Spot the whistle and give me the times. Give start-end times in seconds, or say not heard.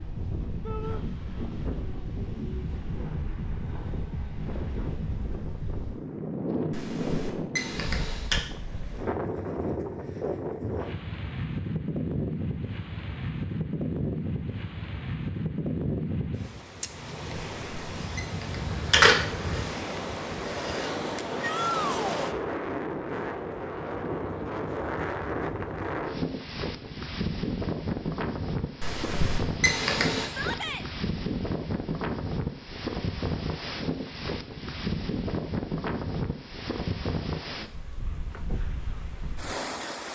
not heard.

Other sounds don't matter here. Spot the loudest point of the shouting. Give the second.
22 s.